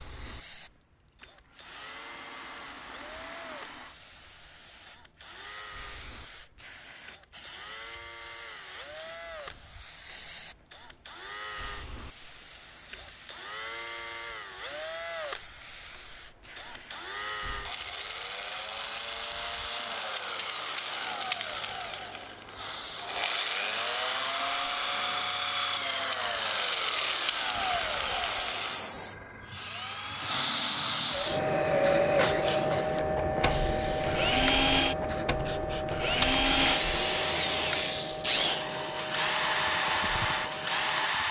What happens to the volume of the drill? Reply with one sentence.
The volume of the drill goes up.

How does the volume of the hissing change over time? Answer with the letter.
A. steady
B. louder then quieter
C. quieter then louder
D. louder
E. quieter
D.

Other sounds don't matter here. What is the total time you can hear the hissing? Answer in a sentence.
The hissing can be heard for 41 seconds in total.